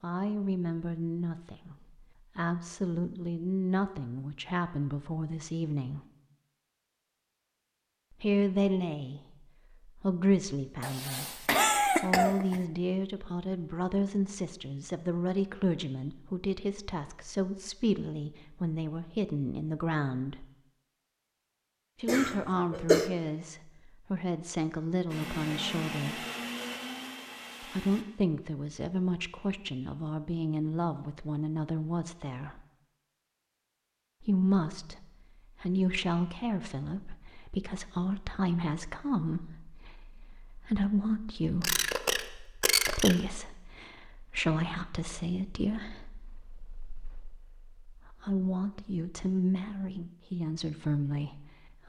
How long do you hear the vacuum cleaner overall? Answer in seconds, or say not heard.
3 s.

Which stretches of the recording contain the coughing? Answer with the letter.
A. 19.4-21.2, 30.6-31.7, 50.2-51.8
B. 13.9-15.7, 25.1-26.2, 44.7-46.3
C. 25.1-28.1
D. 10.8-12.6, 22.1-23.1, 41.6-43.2
D.